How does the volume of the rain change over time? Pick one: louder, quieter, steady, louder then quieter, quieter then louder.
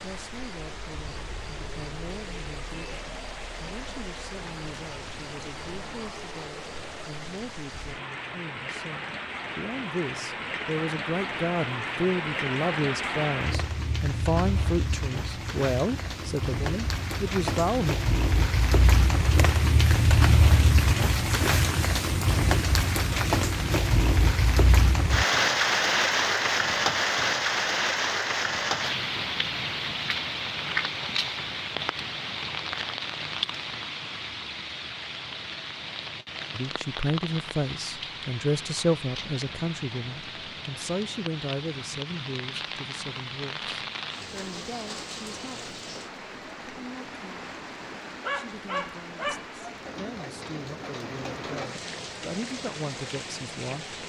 louder then quieter.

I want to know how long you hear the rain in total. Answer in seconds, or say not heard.
54 s.